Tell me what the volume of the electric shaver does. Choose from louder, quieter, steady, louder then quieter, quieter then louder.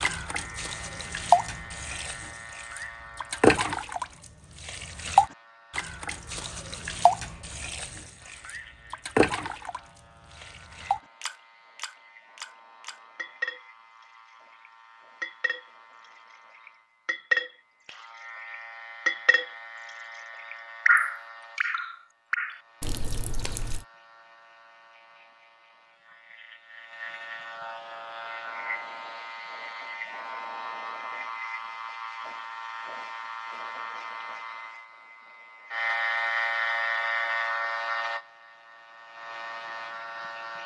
quieter then louder.